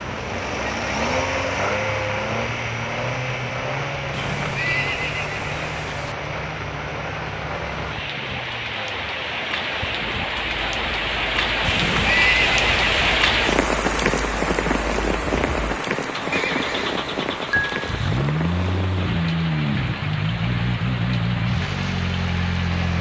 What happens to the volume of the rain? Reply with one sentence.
The loudness of the rain goes up, then down.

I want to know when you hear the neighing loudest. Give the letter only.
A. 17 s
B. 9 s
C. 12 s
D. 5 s
C.